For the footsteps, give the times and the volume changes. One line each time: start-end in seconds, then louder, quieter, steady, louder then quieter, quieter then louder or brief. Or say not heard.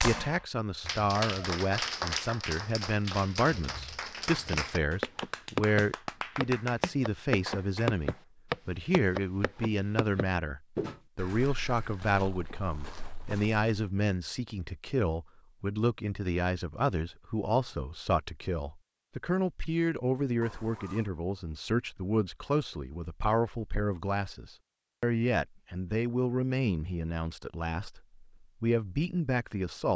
4.5-13.7 quieter.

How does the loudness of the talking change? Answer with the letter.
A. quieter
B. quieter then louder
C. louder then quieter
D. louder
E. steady
E.